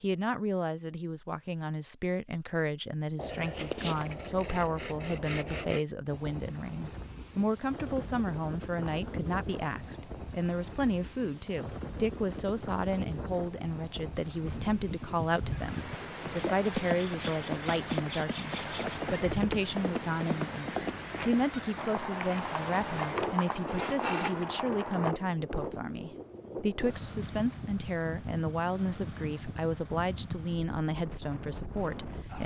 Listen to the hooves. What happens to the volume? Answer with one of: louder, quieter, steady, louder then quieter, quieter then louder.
steady.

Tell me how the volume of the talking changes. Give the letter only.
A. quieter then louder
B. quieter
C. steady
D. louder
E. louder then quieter
C.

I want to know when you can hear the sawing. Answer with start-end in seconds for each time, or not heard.
3.1-5.8, 16.6-19.0, 22.9-24.4.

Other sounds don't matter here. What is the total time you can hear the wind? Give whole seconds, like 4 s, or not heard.
26 s.